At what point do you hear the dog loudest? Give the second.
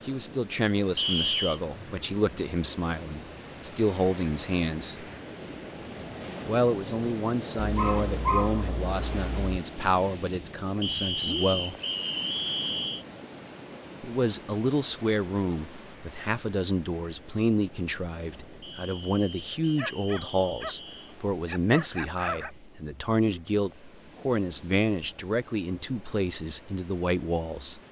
8 s.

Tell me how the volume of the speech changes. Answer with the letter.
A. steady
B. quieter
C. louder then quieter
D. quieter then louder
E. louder
A.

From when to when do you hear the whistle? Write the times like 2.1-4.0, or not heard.
0.9-1.6, 10.8-13.1, 18.6-21.1.